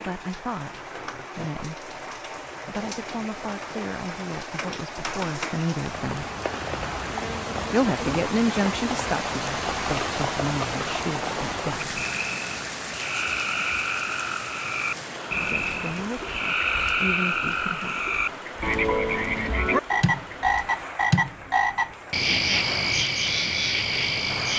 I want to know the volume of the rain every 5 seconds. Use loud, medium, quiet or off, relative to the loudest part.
medium, loud, loud, medium, medium.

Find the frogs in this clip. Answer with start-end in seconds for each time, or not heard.
11.8-24.5.